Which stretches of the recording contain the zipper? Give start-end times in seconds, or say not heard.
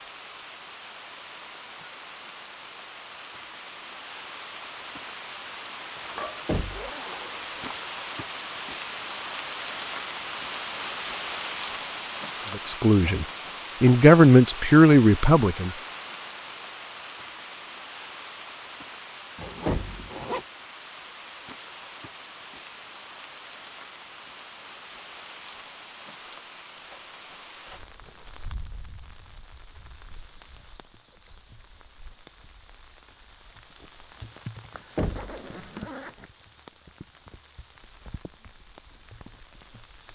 6.0-7.8, 19.4-20.4, 34.7-36.3.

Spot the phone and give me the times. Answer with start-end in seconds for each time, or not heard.
not heard.